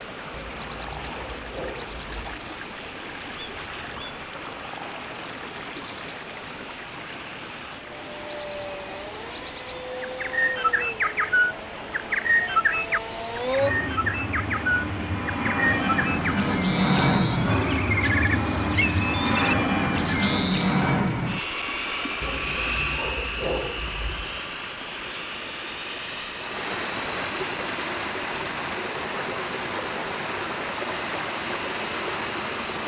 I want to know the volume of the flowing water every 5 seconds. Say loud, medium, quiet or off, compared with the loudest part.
medium, medium, medium, medium, medium, loud, loud.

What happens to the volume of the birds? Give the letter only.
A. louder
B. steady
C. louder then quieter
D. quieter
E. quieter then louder
A.